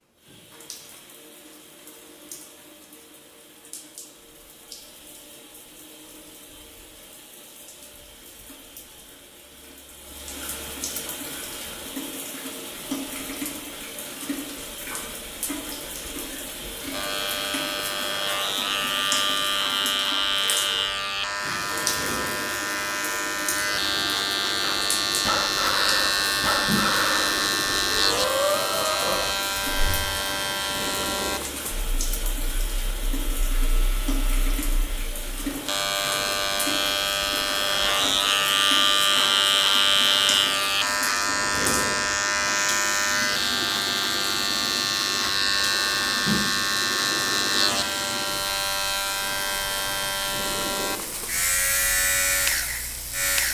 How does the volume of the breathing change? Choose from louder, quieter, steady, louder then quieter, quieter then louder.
steady.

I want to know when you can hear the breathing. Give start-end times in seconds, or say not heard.
24.6-30.1.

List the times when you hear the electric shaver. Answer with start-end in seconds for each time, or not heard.
16.9-53.4.